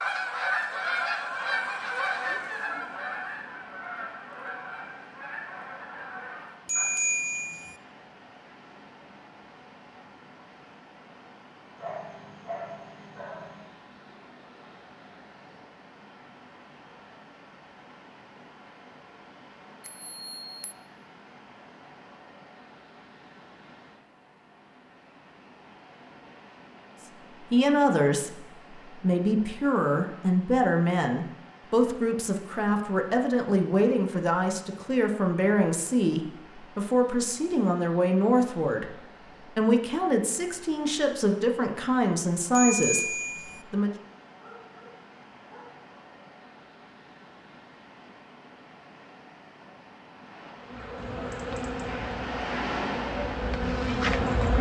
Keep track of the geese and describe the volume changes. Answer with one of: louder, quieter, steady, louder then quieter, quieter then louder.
quieter.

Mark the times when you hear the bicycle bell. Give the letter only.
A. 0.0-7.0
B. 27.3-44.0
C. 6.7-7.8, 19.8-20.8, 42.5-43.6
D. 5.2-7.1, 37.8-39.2
C.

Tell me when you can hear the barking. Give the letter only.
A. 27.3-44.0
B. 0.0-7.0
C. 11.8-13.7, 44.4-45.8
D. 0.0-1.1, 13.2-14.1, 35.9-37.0
C.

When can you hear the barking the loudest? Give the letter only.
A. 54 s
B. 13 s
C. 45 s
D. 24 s
B.